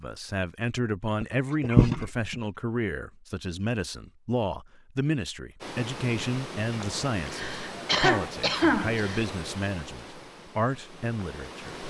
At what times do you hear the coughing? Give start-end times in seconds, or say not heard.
1.2-2.4, 6.7-9.2.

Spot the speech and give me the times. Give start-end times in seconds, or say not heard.
0.0-11.7.